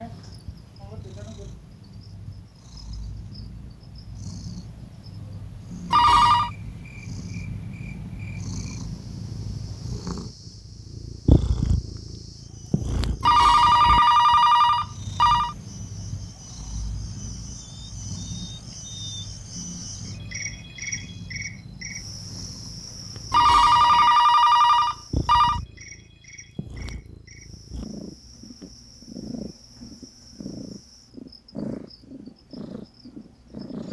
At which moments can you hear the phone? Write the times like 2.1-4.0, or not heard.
5.9-6.5, 13.2-15.6, 23.3-25.6.